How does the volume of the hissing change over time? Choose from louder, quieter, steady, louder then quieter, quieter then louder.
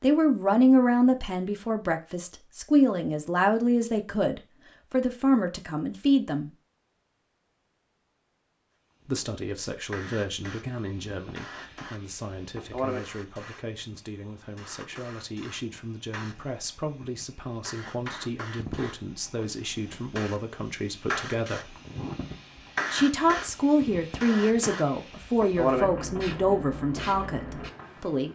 quieter then louder.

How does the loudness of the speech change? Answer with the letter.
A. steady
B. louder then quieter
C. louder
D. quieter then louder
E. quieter
D.